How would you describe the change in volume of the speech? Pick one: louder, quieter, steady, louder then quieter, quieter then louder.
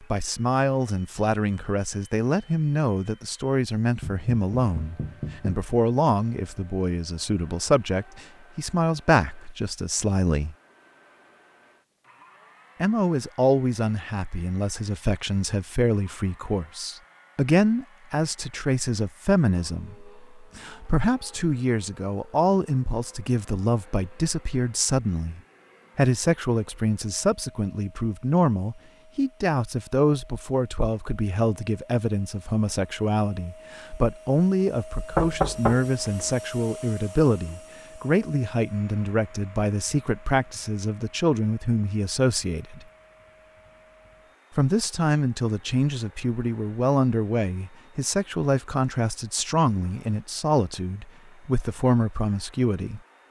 steady.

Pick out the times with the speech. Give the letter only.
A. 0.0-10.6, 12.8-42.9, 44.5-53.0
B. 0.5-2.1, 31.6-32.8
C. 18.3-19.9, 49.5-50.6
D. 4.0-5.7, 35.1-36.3
A.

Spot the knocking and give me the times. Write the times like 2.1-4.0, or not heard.
4.0-5.7, 35.1-36.3.